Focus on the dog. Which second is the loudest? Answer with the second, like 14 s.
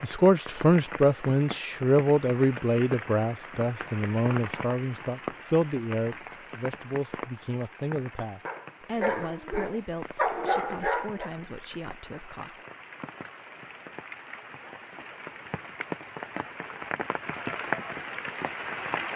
10 s.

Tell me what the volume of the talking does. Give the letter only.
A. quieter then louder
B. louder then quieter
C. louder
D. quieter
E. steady
D.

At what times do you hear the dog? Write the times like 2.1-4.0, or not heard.
8.4-11.3.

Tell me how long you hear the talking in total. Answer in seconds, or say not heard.
13 s.